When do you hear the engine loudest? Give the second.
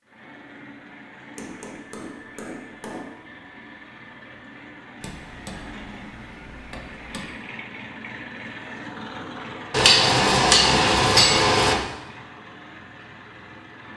9 s.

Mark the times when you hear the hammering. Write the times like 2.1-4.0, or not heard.
1.4-3.1, 5.0-7.3, 9.7-11.8.